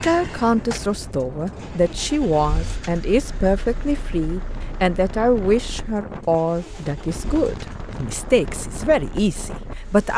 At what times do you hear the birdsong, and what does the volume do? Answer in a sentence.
You can't hear the birdsong here.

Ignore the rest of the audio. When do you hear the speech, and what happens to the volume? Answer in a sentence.
You can hear the speech from 0.0 to 10.1 s, at a steady volume.